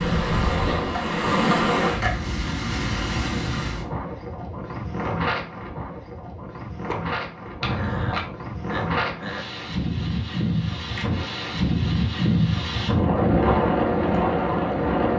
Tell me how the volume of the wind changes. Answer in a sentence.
The loudness of the wind goes down, then up.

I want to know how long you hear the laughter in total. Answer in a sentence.
You can hear the laughter for 3 seconds altogether.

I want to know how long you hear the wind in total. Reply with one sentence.
The wind can be heard for 15 seconds in total.